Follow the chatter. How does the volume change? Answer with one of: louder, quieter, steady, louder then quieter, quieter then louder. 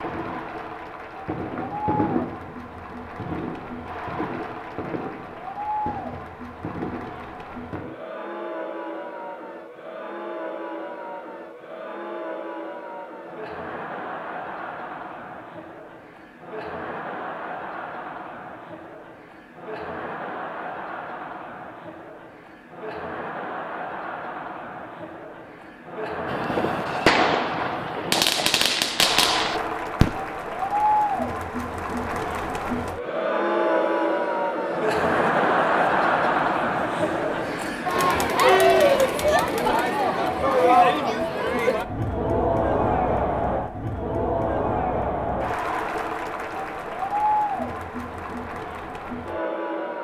louder.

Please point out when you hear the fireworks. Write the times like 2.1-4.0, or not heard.
0.0-8.0, 26.2-30.2.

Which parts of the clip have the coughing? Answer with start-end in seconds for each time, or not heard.
not heard.